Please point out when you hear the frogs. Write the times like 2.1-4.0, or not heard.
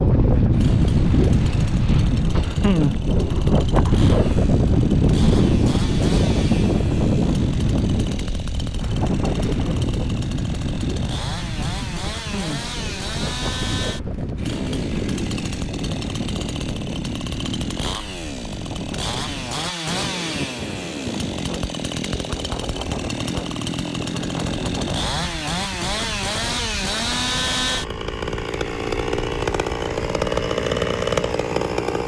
not heard.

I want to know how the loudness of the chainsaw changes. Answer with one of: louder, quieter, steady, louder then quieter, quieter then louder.
louder.